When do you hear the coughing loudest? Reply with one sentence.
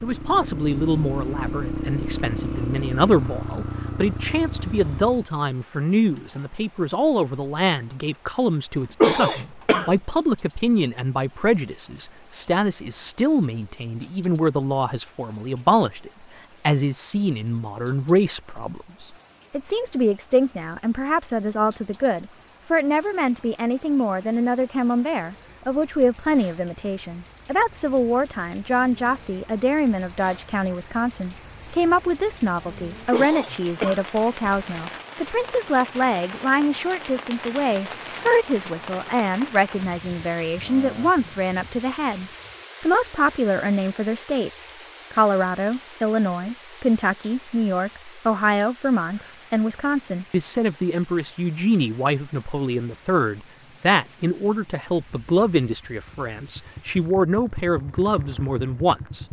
The volume of the coughing peaks at 9 seconds.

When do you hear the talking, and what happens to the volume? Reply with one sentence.
The talking can be heard from 0.0 to 59.2 s, at a steady volume.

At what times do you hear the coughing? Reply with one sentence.
You can hear the coughing from 9.0 to 9.9 s and from 33.1 to 34.6 s.